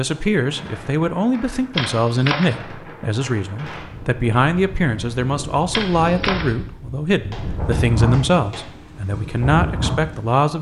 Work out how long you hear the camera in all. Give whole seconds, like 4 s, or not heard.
2 s.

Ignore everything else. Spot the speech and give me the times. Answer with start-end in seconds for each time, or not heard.
0.0-10.5.